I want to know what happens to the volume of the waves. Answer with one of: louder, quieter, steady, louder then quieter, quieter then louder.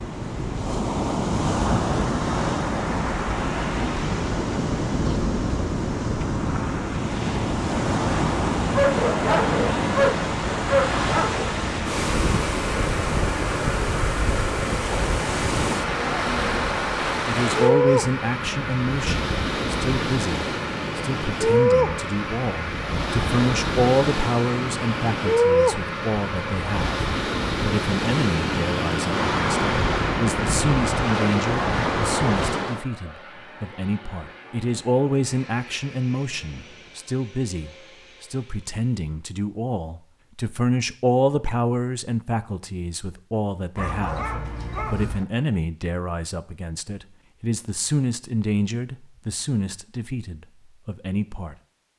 steady.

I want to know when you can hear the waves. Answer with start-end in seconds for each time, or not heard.
0.0-32.9.